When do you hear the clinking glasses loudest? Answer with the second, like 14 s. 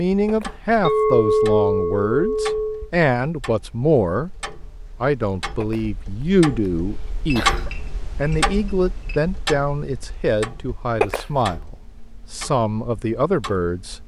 1 s.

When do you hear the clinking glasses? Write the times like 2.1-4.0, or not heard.
0.8-2.9, 7.3-9.2.